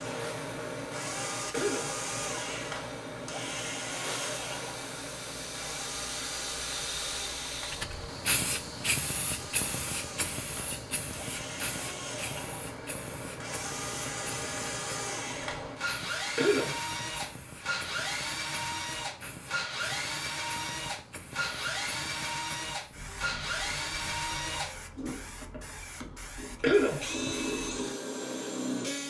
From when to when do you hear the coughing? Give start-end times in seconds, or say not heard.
1.5-2.2, 16.4-17.1, 26.6-27.3.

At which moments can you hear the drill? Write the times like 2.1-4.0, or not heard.
0.0-29.0.